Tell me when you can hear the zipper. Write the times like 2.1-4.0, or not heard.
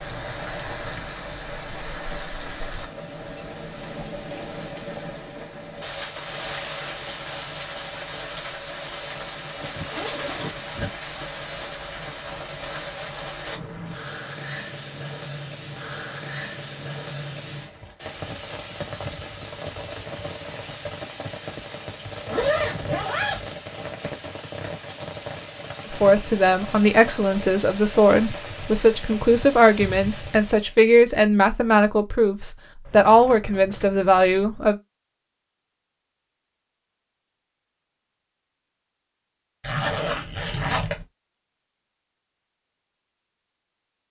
9.6-10.9, 22.0-23.6, 39.6-41.0.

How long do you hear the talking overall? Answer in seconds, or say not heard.
9 s.